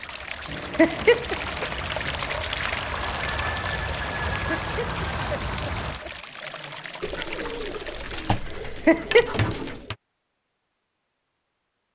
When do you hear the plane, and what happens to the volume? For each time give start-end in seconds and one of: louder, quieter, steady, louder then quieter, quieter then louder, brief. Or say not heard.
0.0-6.2 louder.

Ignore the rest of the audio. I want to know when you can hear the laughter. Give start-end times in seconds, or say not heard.
0.8-1.4, 4.5-6.1, 8.7-9.3.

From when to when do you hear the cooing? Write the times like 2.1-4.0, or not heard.
0.5-2.5, 7.0-9.9.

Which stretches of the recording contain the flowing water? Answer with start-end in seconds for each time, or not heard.
0.0-8.5.